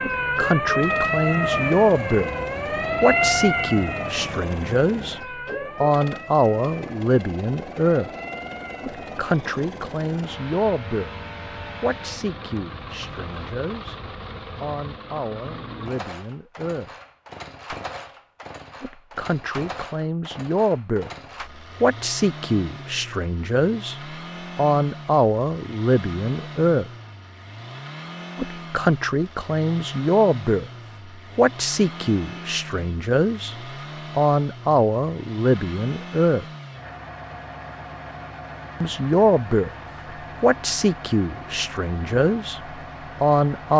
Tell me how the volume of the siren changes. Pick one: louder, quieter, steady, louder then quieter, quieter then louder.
quieter.